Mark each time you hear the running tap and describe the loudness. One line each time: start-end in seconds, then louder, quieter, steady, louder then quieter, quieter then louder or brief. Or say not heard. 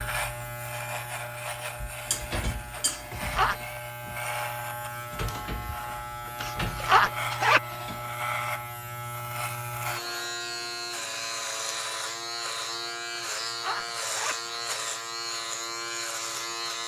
not heard.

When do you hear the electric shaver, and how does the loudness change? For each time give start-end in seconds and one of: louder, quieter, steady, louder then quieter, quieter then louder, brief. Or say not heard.
0.0-16.8 steady.